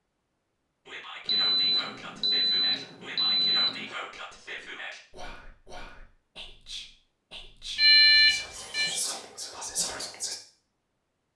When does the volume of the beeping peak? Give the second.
8 s.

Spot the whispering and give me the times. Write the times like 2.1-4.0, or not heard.
0.8-10.3.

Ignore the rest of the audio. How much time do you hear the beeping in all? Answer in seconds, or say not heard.
4 s.